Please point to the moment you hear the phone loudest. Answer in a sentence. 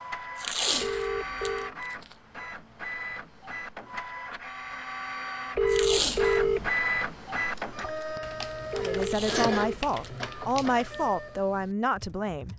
The loudest moment of the phone is at 6 seconds.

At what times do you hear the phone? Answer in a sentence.
You can hear the phone from 0.8 to 1.8 s, from 5.5 to 6.7 s and from 8.7 to 9.8 s.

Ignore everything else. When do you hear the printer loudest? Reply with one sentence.
The loudest moment of the printer is at 7 seconds.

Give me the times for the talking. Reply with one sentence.
You can hear the talking from 8.8 to 12.5 s.